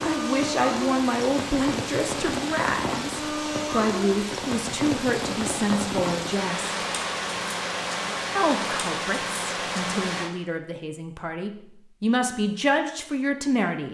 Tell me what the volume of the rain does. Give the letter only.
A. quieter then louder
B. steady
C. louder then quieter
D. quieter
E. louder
B.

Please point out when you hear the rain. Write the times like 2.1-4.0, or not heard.
0.0-10.3.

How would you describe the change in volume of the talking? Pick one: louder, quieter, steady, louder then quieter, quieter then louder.
quieter then louder.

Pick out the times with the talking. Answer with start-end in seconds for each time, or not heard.
0.0-6.8, 8.3-13.9.